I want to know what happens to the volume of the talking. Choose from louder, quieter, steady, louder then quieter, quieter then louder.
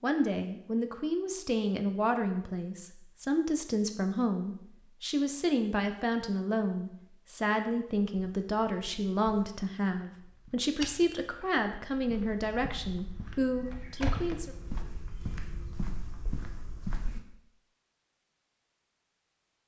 steady.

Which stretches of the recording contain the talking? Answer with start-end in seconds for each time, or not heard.
0.0-14.6.